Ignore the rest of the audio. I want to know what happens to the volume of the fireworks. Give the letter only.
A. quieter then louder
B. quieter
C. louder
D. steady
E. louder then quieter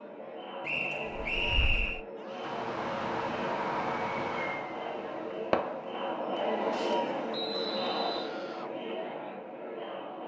E.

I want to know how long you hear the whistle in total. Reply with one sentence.
The whistle can be heard for 2 seconds in total.